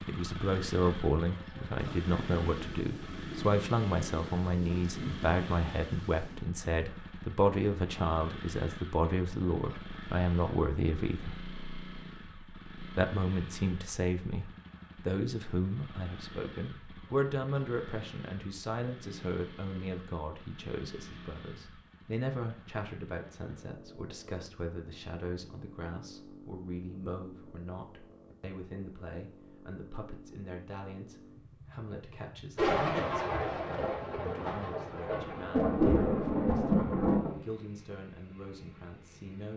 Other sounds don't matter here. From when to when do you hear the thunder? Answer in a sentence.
You can hear the thunder from 1.8 to 6.5 s and from 32.5 to 37.4 s.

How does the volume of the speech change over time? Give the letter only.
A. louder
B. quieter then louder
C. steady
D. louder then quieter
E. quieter
E.